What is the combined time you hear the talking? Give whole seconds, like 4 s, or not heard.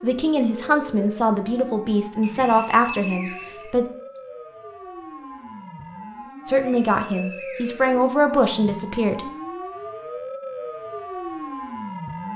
7 s.